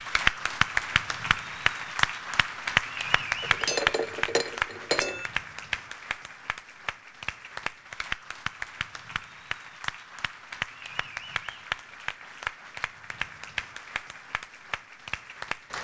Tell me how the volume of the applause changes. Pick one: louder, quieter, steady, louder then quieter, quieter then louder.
quieter.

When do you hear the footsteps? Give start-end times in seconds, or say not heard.
not heard.